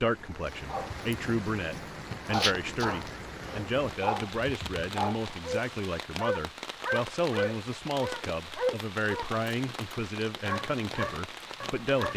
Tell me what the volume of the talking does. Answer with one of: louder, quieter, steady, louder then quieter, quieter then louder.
steady.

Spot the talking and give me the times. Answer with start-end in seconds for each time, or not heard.
0.0-12.1.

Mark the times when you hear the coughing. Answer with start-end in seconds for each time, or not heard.
not heard.